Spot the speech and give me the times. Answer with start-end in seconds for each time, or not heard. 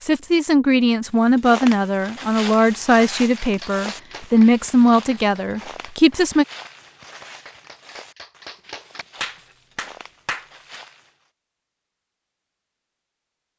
0.0-6.5.